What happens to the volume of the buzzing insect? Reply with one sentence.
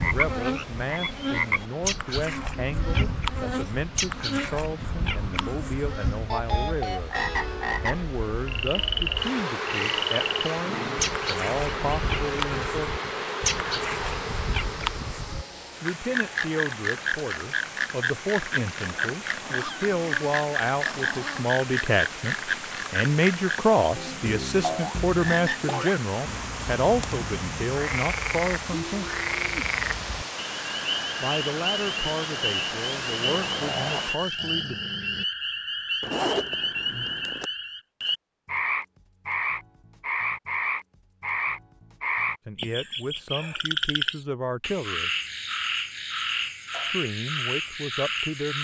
The volume of the buzzing insect goes down, then up.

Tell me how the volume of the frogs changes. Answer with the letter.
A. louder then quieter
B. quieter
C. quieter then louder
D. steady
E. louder
D.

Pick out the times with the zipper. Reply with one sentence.
You can hear the zipper from 36.0 to 37.5 s.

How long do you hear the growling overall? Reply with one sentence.
You can hear the growling for 6 seconds altogether.